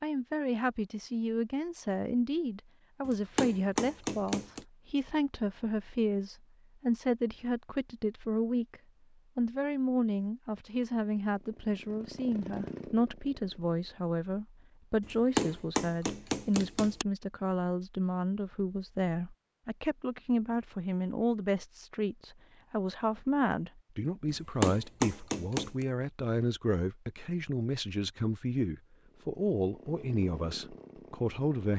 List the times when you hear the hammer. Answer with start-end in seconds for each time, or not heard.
3.0-4.7, 15.0-17.1, 24.2-25.9.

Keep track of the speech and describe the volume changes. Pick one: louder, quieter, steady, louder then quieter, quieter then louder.
steady.